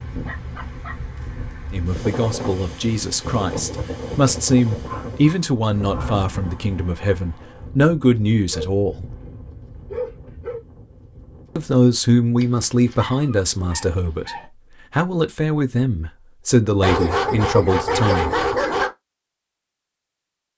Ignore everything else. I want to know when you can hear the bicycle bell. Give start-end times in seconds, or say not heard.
not heard.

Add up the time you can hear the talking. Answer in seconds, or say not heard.
14 s.